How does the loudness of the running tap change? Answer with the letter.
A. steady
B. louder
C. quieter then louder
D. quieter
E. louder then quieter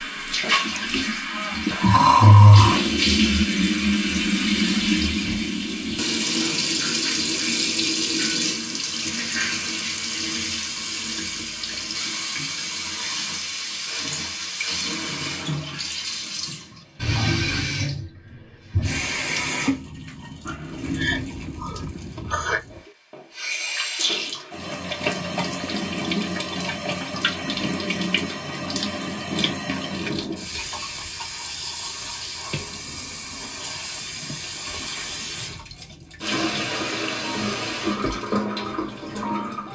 D.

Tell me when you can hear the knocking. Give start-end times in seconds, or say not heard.
not heard.